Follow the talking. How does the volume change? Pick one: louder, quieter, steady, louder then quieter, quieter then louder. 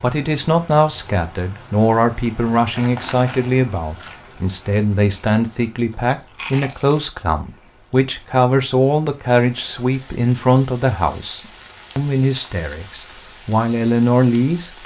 steady.